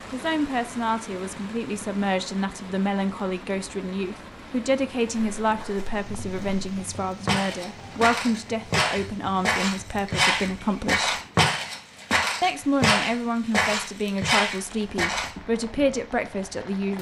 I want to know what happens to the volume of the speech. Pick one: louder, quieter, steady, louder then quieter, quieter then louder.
steady.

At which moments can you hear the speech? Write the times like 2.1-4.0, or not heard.
0.1-11.2, 12.4-16.9.